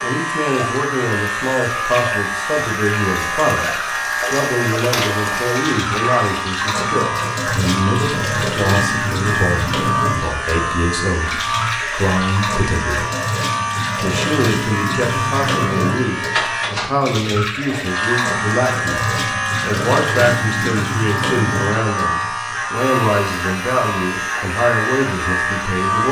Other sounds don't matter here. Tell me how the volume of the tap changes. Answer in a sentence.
The loudness of the tap stays about the same.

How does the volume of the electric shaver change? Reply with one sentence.
The loudness of the electric shaver stays about the same.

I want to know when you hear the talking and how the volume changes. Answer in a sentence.
The talking can be heard from 0.0 to 13.1 s, at a steady volume; and from 13.9 to 26.0 s, at a steady volume.